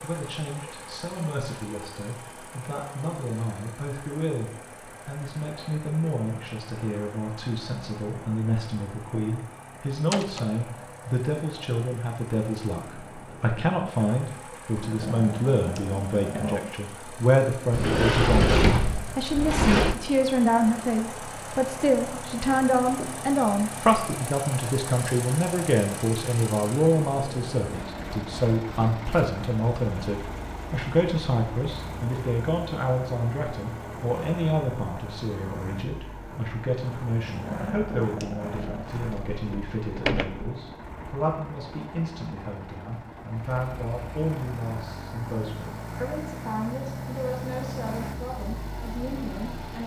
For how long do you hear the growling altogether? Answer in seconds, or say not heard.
4 s.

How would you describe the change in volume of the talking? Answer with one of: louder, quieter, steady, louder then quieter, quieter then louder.
louder then quieter.